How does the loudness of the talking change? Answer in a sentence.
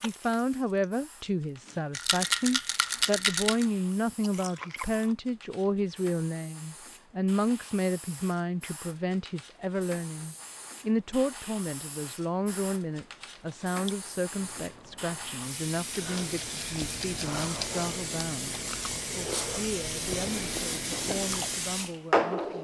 The loudness of the talking goes down.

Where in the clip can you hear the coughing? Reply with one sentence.
The coughing can't be heard in this clip.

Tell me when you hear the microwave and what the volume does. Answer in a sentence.
You can't hear the microwave here.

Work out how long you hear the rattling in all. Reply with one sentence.
The rattling can be heard for 4 seconds in total.